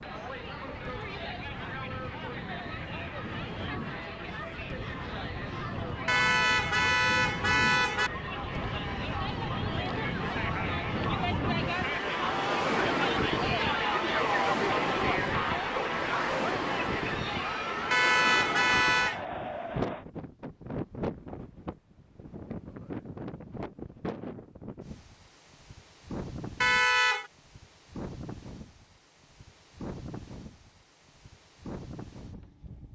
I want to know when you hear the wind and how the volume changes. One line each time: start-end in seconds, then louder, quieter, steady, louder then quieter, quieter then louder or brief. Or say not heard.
0.0-32.9 louder then quieter.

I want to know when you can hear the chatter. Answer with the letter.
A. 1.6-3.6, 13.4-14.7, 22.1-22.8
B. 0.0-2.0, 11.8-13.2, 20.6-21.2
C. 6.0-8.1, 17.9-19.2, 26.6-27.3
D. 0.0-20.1
D.